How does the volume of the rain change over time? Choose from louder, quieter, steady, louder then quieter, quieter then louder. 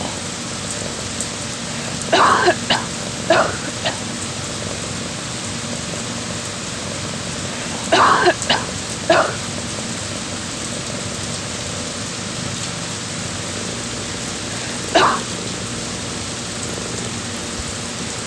steady.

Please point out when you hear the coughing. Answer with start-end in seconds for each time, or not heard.
1.7-4.0, 7.5-9.4, 14.5-15.2.